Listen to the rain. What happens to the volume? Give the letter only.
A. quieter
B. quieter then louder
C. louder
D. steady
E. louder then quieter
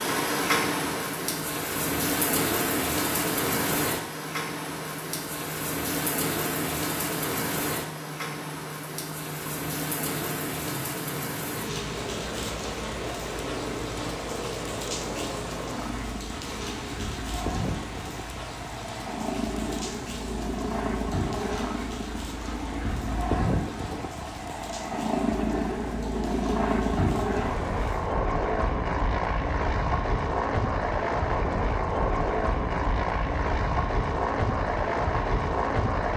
A.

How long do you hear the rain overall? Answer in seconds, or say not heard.
28 s.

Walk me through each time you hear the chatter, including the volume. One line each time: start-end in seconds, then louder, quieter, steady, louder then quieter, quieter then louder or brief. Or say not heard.
not heard.